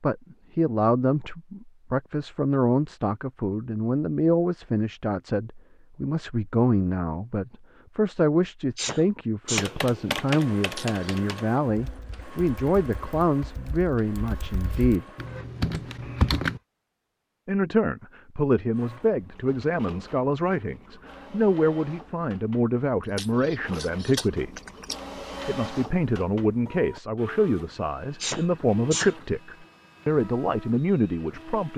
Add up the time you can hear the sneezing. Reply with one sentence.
You can hear the sneezing for 2 seconds altogether.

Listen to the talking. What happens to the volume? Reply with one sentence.
The volume of the talking stays about the same.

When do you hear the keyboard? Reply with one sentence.
You can hear the keyboard from 9.4 to 16.6 s.